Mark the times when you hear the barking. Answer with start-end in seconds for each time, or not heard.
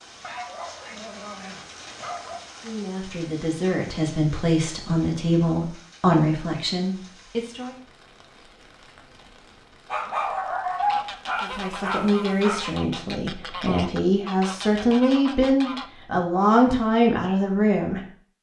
0.2-2.4, 9.8-12.6.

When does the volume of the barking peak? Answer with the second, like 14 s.
11 s.